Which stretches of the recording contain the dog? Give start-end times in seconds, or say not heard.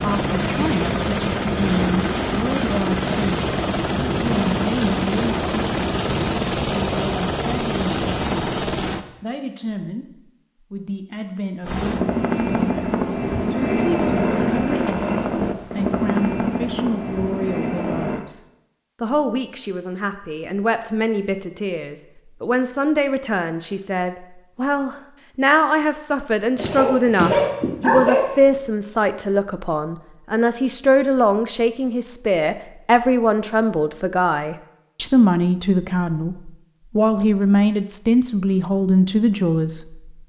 26.6-28.6.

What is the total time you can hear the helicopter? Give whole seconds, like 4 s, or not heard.
16 s.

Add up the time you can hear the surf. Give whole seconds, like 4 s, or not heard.
not heard.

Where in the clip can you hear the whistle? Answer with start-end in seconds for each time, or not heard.
not heard.